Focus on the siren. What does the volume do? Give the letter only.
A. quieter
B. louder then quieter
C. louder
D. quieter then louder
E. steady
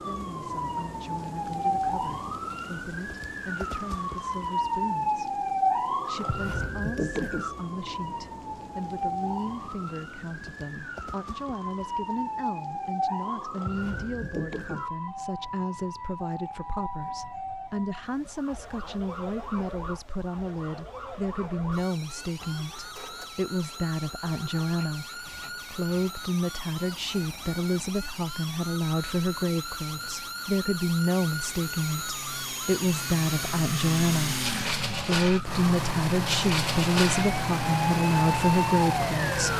D.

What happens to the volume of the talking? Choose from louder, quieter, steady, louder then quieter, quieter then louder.
louder.